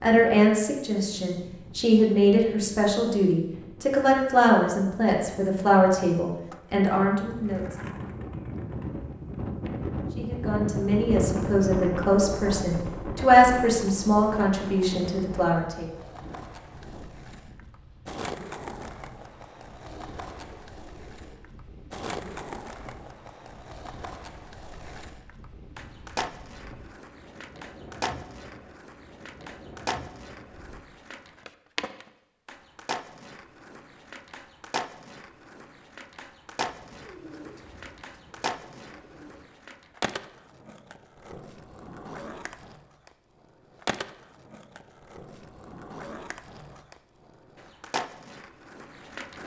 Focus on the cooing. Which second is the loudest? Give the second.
37 s.